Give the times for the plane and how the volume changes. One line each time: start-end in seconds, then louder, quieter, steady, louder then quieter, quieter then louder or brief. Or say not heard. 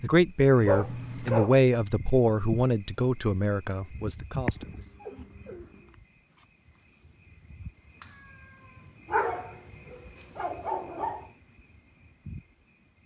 not heard.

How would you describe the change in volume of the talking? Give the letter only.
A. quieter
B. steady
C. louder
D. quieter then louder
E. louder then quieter
A.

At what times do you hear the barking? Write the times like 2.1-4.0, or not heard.
0.7-1.6, 4.5-5.8, 9.1-11.3.